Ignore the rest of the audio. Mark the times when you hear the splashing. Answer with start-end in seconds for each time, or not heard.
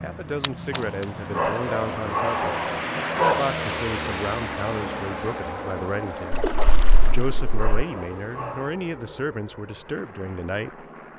0.4-1.1, 6.3-7.6.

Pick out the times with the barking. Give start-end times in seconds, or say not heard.
0.7-3.5, 7.0-8.8.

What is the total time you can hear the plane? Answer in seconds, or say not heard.
11 s.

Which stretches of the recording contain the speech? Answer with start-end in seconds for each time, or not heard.
0.0-6.5, 7.0-10.8.